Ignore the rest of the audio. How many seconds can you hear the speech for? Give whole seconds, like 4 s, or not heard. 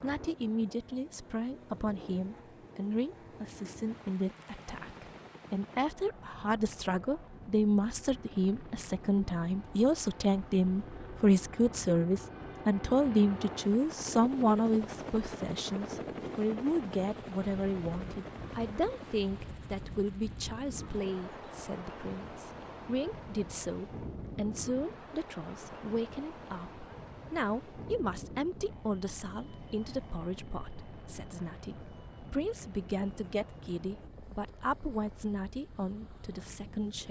37 s.